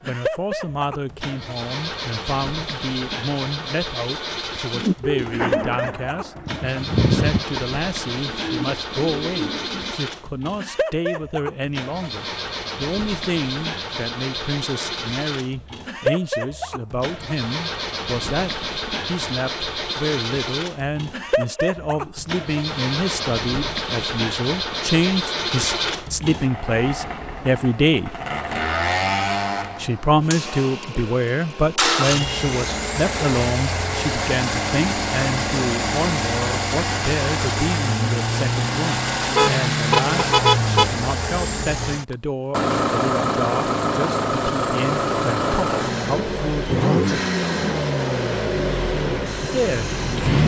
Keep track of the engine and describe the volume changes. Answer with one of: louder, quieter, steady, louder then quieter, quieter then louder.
louder.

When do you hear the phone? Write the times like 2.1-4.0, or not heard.
not heard.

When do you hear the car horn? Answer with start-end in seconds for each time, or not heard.
39.4-40.9.